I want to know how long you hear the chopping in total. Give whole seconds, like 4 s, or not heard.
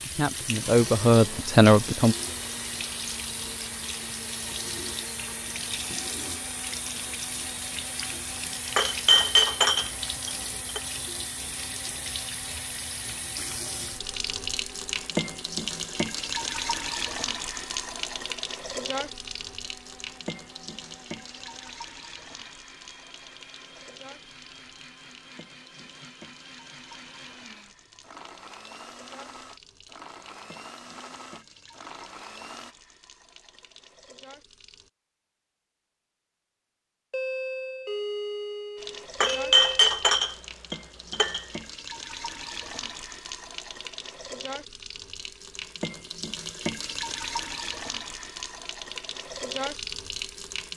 not heard.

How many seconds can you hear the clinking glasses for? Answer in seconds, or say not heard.
4 s.